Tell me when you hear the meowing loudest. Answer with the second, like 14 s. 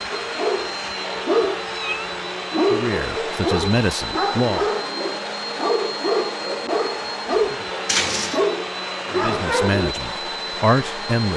8 s.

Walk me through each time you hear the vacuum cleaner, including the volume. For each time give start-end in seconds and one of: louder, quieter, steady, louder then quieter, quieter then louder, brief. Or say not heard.
0.0-11.3 steady.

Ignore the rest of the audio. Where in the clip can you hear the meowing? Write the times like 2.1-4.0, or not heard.
1.4-2.2, 7.8-8.5.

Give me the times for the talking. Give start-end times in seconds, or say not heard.
2.7-4.7, 9.1-11.3.